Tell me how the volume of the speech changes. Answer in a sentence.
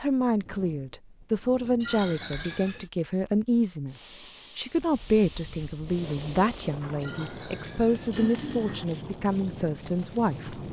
The loudness of the speech stays about the same.